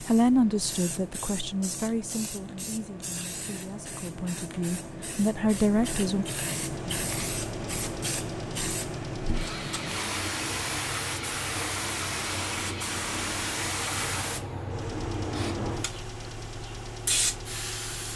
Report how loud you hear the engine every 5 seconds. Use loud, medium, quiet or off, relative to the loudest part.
off, loud, loud, loud.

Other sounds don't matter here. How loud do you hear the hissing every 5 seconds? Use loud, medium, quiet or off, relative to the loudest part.
medium, loud, loud, loud.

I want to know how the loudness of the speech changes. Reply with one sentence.
The volume of the speech goes down, then up.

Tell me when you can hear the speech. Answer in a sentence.
The speech can be heard from 0.0 to 6.2 s.